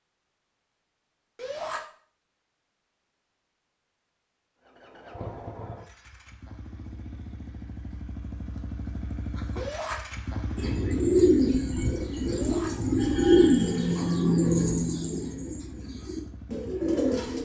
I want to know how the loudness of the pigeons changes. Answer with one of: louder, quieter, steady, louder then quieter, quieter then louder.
quieter.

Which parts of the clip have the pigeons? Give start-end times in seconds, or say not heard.
10.6-17.4.